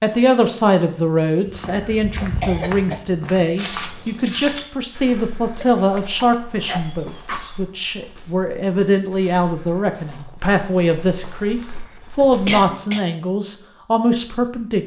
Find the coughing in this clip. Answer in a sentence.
You can hear the coughing from 1.7 to 3.0 s, from 5.6 to 7.6 s and from 11.8 to 13.0 s.